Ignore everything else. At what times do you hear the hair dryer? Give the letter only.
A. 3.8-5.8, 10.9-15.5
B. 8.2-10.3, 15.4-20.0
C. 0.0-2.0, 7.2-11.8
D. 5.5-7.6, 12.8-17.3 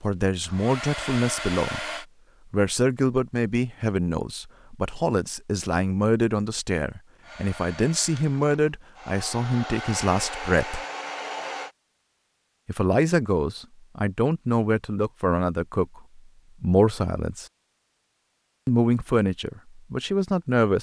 C.